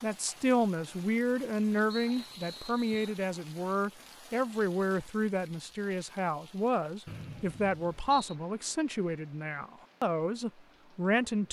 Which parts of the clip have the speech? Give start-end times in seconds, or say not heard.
0.0-11.4.